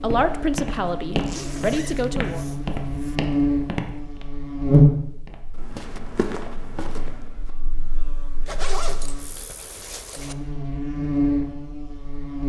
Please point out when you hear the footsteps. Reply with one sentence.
The footsteps can be heard from 0.0 to 4.2 s and from 5.2 to 7.5 s.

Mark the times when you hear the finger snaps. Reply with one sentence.
You can't hear the finger snaps here.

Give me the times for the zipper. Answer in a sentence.
You can hear the zipper from 1.1 to 3.2 s and from 8.4 to 10.3 s.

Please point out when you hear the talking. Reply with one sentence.
The talking can be heard from 0.0 to 2.4 s.